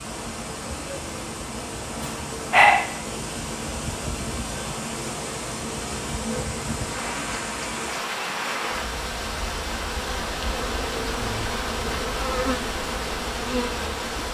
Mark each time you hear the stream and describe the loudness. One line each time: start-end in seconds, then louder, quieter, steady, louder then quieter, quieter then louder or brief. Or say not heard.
0.0-14.2 steady.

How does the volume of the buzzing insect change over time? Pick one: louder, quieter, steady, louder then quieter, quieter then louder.
louder.